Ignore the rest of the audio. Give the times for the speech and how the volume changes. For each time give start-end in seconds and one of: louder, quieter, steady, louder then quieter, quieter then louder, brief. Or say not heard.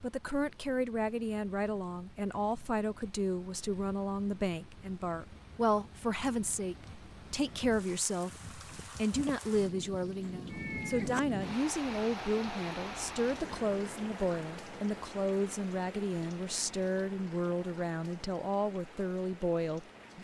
0.0-20.1 steady.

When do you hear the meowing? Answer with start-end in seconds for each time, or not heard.
10.2-11.2.